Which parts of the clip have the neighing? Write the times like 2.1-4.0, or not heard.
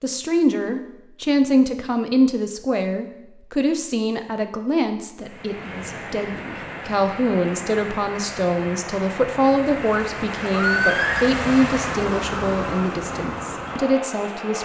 10.5-11.3.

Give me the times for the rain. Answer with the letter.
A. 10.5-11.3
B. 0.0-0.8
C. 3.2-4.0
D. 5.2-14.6
D.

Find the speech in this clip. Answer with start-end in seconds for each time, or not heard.
0.0-14.6.